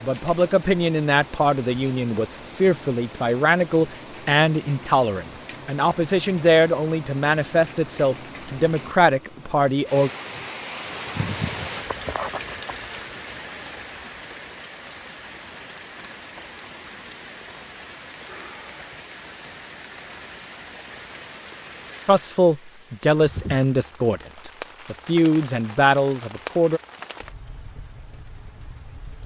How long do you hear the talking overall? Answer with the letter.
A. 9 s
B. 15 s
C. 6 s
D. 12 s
B.